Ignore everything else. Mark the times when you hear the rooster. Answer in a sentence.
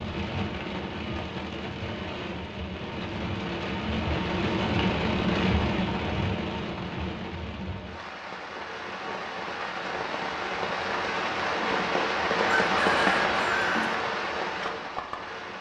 You can hear the rooster from 12.4 to 13.9 s.